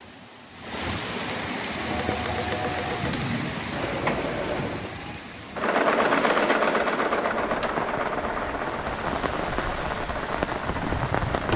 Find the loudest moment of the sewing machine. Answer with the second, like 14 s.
6 s.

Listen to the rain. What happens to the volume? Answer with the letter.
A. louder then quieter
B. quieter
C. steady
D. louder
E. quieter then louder
E.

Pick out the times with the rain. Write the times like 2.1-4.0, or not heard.
0.0-11.5.